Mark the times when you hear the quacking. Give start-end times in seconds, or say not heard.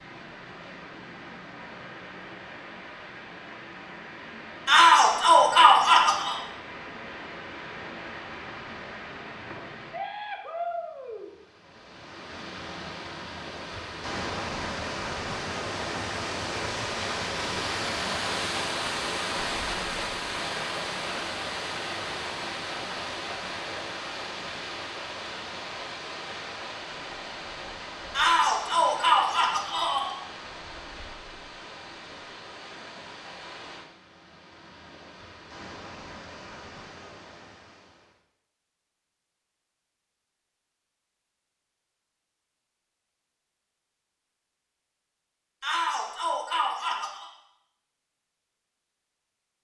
not heard.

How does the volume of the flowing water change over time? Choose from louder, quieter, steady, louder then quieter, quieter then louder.
louder then quieter.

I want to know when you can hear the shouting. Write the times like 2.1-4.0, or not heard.
4.7-6.4, 28.1-30.1, 45.6-47.2.